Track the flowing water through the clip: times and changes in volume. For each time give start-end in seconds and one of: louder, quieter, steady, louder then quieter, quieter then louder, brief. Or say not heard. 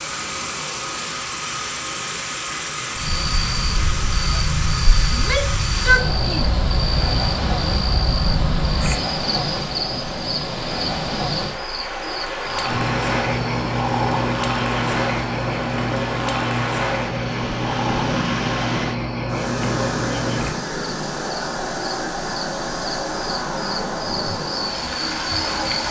0.0-25.8 steady.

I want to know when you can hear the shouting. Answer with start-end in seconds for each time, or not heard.
5.1-6.5.